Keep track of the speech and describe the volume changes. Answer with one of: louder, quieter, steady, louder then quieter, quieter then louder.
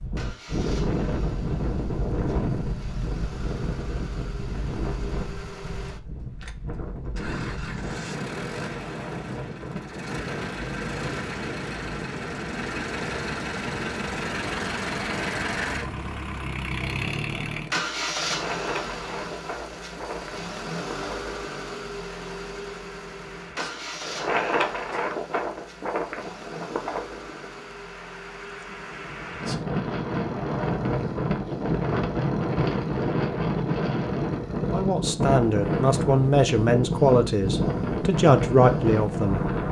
quieter then louder.